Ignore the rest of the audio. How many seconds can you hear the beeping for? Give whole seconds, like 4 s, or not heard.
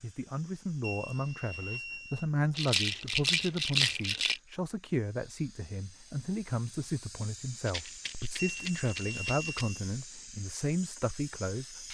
3 s.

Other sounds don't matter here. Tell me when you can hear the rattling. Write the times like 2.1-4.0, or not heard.
2.5-4.4, 7.7-9.7.